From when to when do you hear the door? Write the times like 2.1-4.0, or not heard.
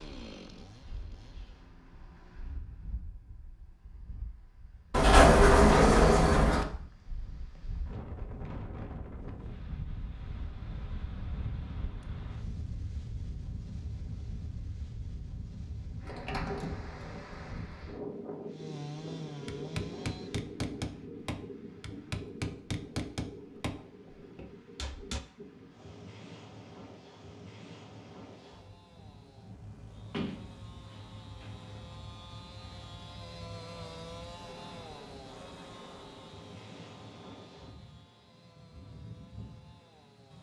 4.9-6.7, 16.0-17.9, 30.1-31.8.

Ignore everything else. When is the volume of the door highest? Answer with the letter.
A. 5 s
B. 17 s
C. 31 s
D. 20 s
A.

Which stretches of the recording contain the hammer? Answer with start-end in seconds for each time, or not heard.
19.4-25.2.